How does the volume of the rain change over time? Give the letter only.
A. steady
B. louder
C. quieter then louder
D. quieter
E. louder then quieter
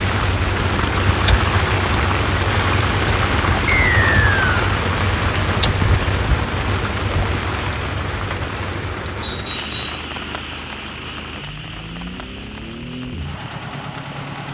D.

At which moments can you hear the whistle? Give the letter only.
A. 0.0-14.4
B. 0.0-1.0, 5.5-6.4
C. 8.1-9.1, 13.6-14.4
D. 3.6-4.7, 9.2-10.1
D.